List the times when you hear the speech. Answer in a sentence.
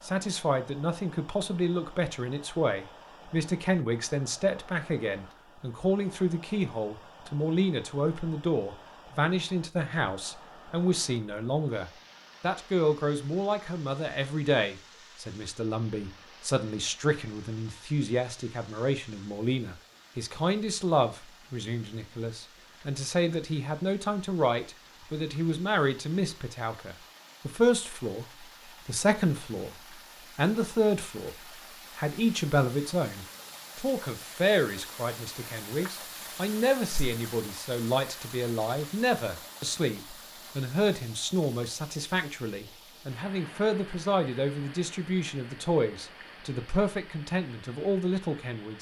You can hear the speech from 0.0 to 31.4 s and from 31.9 to 48.7 s.